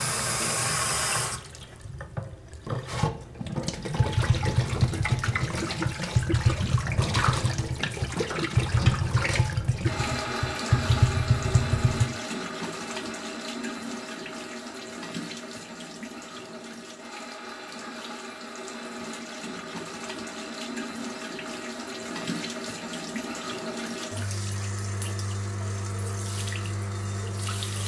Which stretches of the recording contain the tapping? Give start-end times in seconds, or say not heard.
4.0-12.1.